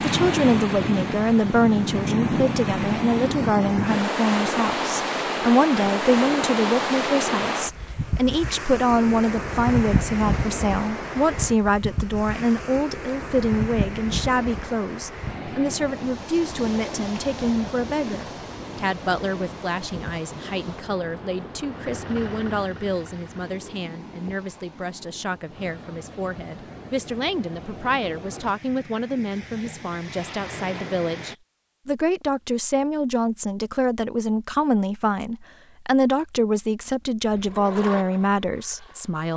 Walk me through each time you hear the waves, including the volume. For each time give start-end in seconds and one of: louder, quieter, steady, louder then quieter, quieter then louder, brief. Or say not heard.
0.0-31.4 quieter.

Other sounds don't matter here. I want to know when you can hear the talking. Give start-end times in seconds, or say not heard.
0.0-39.3.